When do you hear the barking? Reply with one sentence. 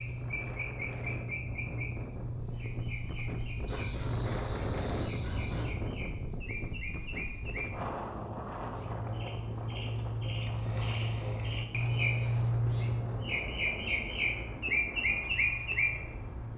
The barking can be heard from 3.6 to 5.7 s.